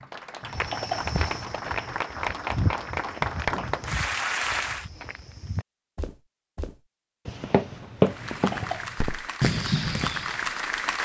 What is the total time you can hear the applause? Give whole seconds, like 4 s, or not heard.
8 s.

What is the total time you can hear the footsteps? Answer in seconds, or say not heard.
10 s.